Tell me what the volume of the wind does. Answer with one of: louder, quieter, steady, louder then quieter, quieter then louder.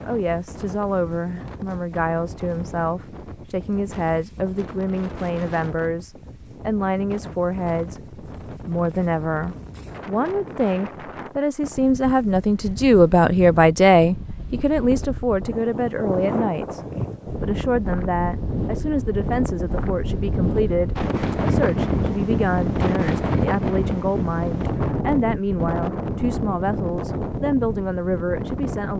louder.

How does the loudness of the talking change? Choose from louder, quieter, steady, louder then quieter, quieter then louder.
louder then quieter.